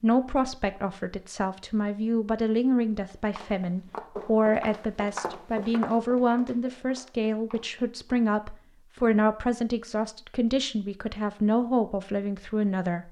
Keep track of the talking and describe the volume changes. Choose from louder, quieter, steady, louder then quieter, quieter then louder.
steady.